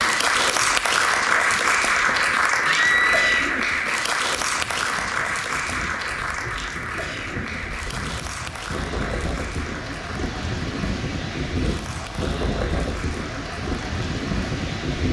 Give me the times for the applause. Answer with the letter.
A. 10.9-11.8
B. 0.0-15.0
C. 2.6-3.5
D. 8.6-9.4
B.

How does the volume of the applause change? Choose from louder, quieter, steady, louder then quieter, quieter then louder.
quieter.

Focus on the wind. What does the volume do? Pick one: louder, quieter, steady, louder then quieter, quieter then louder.
louder.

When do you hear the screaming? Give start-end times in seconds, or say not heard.
2.6-3.5.